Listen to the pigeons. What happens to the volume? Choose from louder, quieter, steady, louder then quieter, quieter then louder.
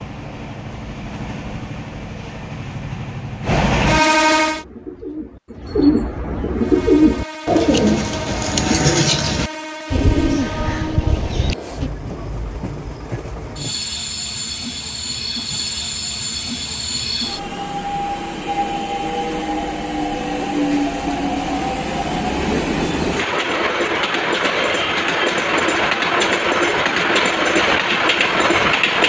louder then quieter.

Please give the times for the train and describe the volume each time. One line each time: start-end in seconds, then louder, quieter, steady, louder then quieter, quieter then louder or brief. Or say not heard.
0.0-4.7 louder
6.5-29.0 louder.